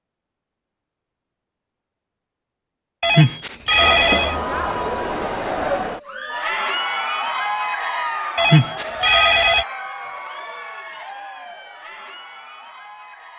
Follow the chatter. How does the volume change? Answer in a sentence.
The volume of the chatter goes down.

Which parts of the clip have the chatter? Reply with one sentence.
The chatter can be heard from 3.7 to 13.3 s.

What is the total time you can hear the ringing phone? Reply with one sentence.
You can hear the ringing phone for 3 seconds altogether.